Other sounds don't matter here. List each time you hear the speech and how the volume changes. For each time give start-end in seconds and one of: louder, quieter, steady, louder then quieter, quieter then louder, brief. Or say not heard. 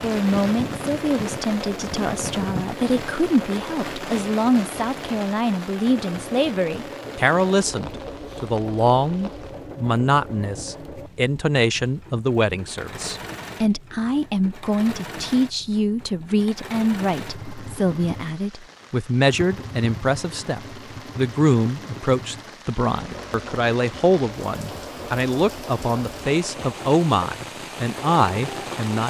0.0-29.0 steady.